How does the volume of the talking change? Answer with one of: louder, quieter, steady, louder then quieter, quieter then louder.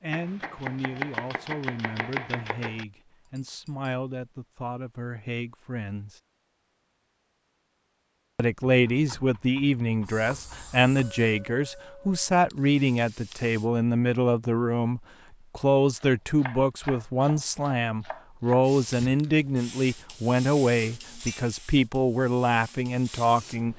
louder.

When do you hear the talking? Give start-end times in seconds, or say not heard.
0.0-6.2, 8.3-23.7.